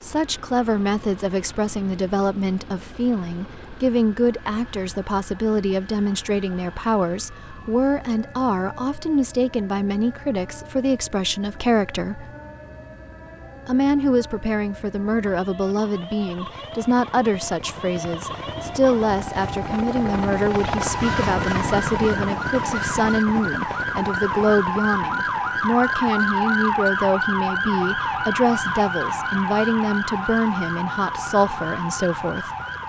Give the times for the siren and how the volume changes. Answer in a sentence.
You can hear the siren from 0.0 to 32.8 s, getting louder.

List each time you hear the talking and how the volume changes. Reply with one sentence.
The talking can be heard from 0.0 to 12.3 s, at a steady volume; and from 13.7 to 32.5 s, at a steady volume.